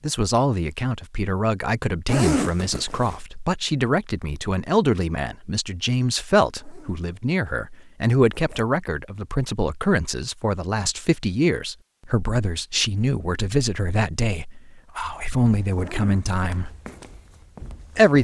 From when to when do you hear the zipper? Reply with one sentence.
You can hear the zipper from 2.0 to 3.1 s, from 6.6 to 7.0 s, from 8.1 to 8.7 s and from 15.8 to 16.3 s.